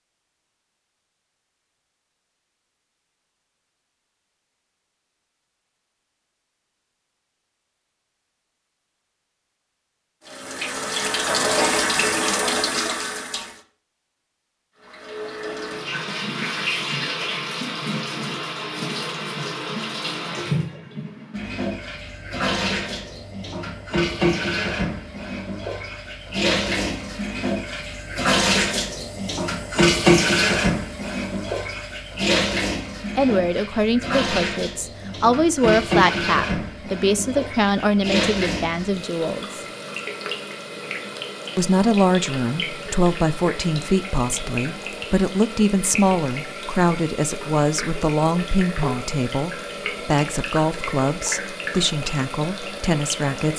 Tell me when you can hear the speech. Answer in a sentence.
The speech can be heard from 33.1 to 39.6 s and from 41.5 to 53.5 s.